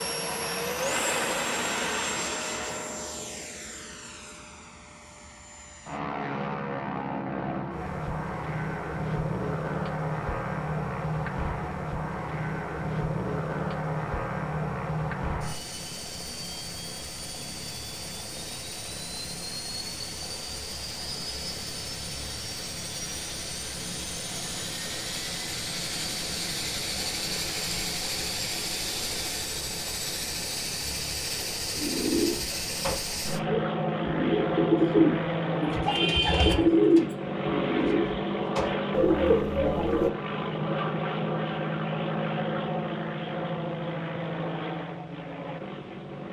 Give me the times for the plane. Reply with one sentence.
You can hear the plane from 0.0 to 46.2 s.